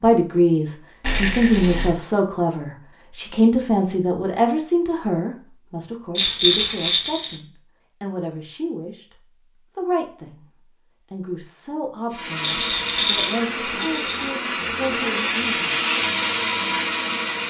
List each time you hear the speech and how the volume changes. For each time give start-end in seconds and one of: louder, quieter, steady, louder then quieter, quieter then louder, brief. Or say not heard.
0.0-15.8 quieter.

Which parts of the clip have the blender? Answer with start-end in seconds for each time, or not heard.
12.1-17.4.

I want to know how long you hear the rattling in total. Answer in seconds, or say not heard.
4 s.